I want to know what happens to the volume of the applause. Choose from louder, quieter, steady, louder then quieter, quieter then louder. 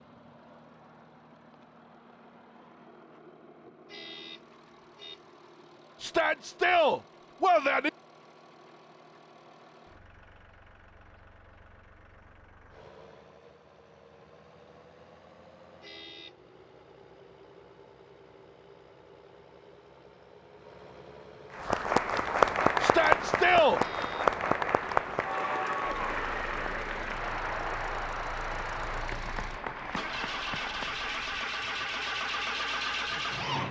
quieter.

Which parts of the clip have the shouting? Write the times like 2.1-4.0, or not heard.
6.0-7.9, 22.8-23.8.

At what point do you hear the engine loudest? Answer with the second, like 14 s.
33 s.